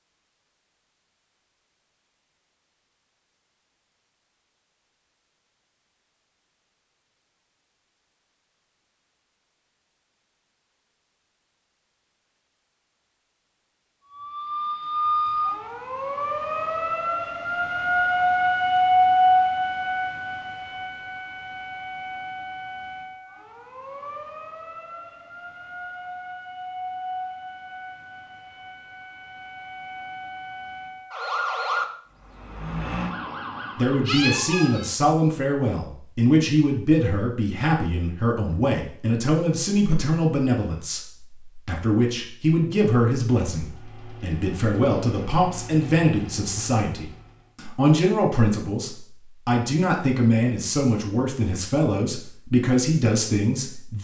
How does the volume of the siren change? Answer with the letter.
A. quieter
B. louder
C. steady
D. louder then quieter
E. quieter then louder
E.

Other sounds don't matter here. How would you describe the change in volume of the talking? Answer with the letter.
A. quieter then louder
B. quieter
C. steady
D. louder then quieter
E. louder
C.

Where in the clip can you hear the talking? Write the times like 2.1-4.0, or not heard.
33.8-53.9.